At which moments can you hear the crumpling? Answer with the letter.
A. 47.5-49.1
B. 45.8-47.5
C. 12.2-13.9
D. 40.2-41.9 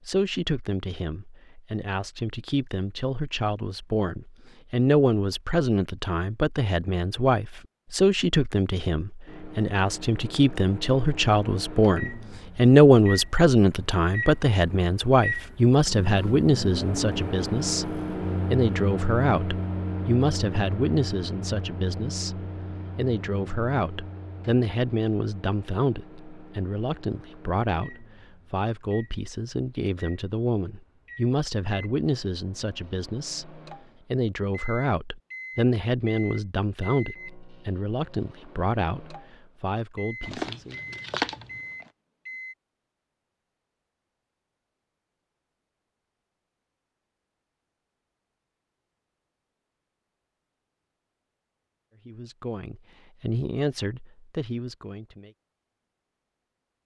D.